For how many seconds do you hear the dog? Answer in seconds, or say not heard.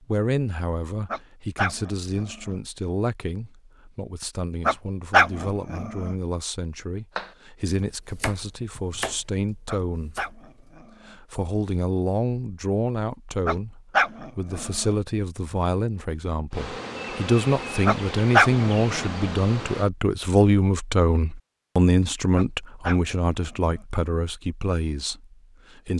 9 s.